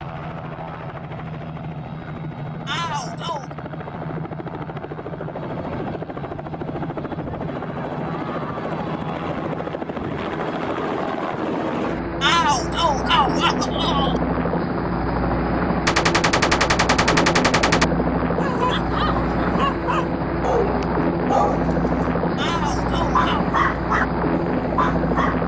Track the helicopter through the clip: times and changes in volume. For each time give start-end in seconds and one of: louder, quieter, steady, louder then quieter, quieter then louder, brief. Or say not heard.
0.0-25.4 louder.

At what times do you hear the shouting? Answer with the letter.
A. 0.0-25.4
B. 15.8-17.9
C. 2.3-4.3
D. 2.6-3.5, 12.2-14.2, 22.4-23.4
D.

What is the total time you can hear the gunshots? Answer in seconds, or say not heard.
2 s.